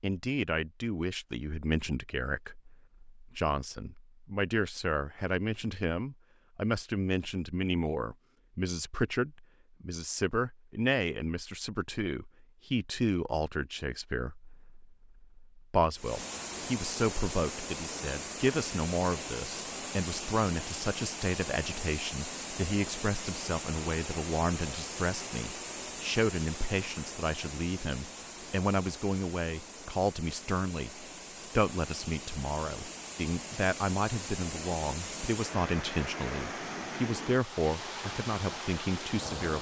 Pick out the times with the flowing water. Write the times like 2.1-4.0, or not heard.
15.9-39.5.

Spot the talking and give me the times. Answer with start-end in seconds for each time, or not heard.
0.0-39.5.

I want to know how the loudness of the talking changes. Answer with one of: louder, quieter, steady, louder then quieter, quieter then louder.
steady.